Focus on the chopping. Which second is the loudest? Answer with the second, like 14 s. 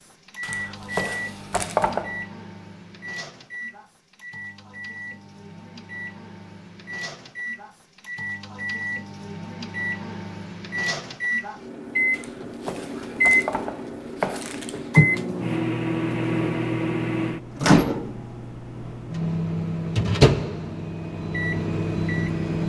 2 s.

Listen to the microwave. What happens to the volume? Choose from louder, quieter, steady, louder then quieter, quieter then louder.
louder.